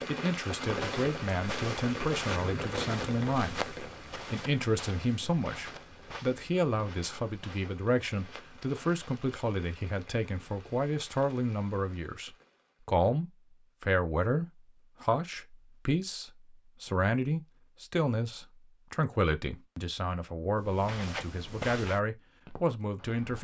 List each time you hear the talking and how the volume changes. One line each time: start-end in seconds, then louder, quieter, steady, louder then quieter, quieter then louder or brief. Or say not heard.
0.1-23.4 steady.